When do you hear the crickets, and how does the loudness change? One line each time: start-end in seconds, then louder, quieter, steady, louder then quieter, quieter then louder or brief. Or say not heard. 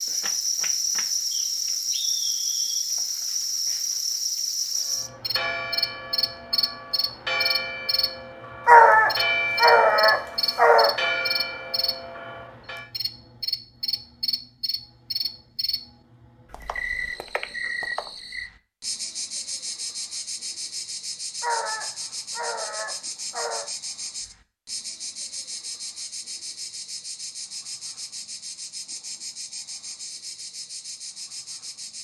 0.0-31.9 quieter.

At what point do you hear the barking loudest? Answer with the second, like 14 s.
9 s.